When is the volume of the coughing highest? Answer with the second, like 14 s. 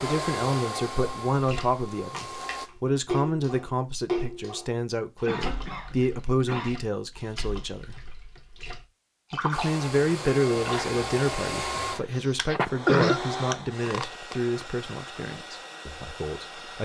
13 s.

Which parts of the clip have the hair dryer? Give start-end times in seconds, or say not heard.
0.0-2.7, 9.5-16.7.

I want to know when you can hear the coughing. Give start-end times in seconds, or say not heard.
5.2-6.8, 11.9-13.2.